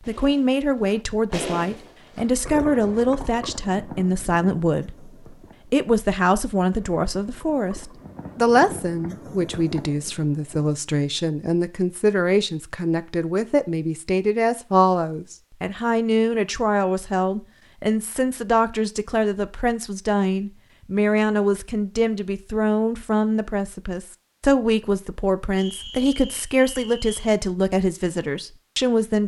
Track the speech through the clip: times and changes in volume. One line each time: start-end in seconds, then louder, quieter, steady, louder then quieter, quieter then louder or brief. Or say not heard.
0.1-29.2 steady.